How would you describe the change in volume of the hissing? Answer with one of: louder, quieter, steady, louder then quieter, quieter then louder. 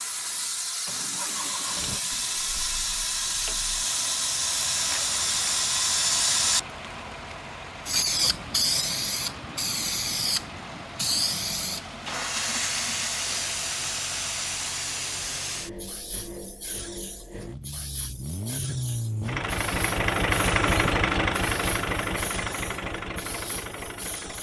quieter.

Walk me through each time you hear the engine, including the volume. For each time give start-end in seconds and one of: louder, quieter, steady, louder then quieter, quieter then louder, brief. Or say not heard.
0.0-24.3 louder.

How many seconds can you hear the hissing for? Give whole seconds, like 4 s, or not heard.
24 s.